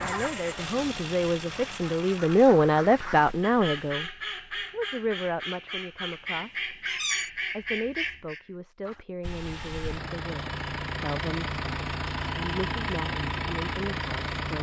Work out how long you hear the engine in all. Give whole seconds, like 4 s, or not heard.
9 s.